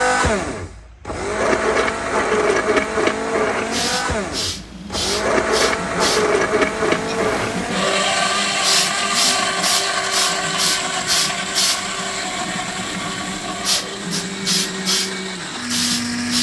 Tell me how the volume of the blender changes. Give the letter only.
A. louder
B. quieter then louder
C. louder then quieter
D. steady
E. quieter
E.